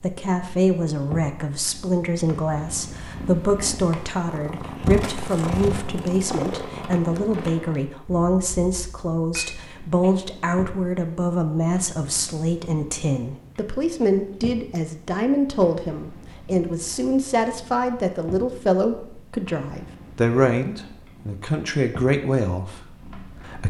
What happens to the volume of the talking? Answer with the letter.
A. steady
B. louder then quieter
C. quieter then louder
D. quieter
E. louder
A.